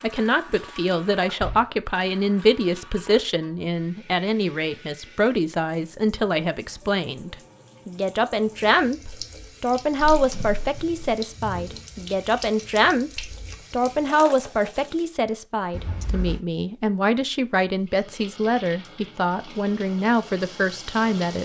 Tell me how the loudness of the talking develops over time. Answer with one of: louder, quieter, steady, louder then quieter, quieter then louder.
steady.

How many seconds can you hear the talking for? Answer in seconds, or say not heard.
21 s.